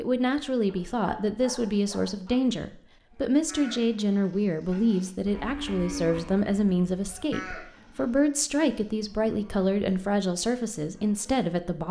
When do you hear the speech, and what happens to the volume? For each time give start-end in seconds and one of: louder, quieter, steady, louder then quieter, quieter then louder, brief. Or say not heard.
0.0-11.8 steady.